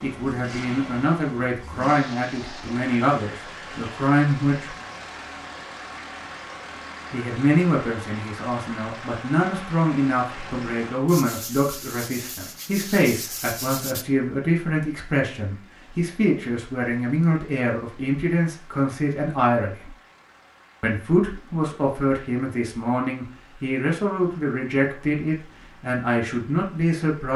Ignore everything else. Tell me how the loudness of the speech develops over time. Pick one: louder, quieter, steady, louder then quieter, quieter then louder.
steady.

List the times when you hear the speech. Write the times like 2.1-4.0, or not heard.
0.0-4.7, 7.1-19.9, 20.8-27.3.